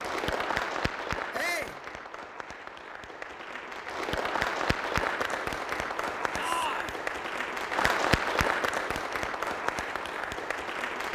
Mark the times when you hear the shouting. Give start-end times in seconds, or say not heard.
1.3-1.8, 6.3-7.0.